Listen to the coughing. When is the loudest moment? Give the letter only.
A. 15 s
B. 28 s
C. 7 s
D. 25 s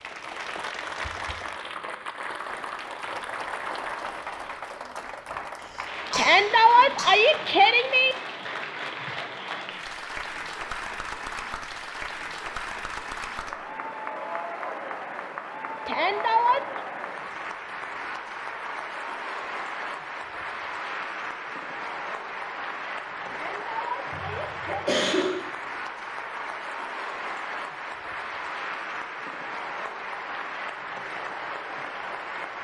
D.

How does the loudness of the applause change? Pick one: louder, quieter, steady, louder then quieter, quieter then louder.
steady.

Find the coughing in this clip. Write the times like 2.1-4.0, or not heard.
5.6-7.2, 24.1-25.4.